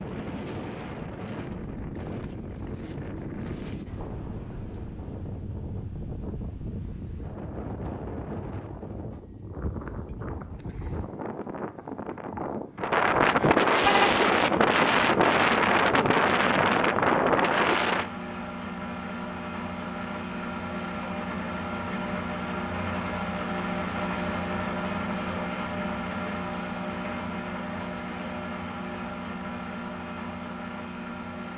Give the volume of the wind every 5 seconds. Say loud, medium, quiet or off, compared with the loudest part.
quiet, quiet, loud, loud, off, off, off.